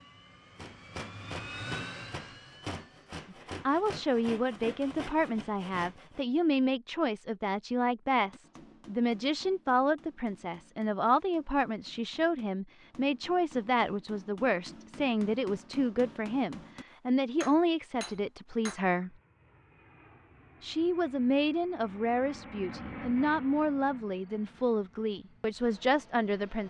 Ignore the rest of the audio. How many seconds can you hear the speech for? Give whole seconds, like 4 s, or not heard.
22 s.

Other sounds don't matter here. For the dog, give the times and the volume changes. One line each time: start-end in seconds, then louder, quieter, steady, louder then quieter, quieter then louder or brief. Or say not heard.
not heard.